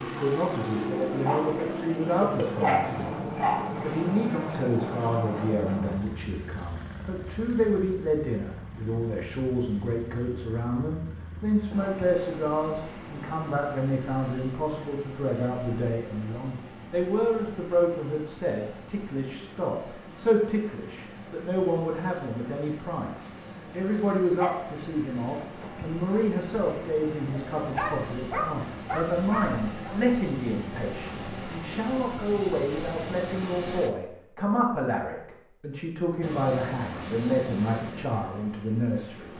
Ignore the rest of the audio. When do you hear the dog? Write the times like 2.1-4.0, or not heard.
1.1-3.9, 23.9-24.6, 27.6-29.9.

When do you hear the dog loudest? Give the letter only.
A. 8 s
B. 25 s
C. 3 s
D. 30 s
C.